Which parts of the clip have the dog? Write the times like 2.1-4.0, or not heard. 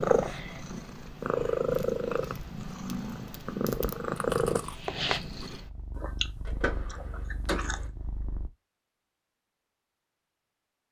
not heard.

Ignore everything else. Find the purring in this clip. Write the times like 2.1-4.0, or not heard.
0.0-8.5.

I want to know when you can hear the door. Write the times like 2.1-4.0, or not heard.
6.5-7.8.